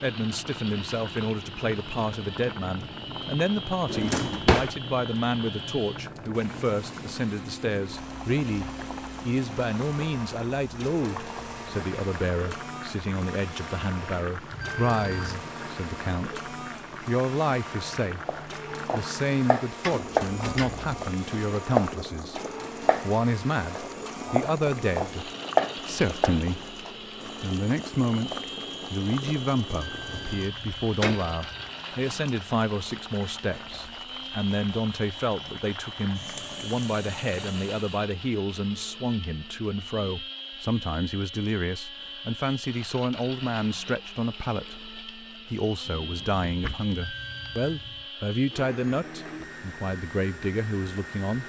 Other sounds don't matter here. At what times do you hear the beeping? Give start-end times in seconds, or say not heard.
14.5-15.4, 29.7-31.7, 46.9-48.0.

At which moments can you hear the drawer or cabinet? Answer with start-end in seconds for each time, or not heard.
3.9-4.7, 19.8-21.0, 46.0-47.0.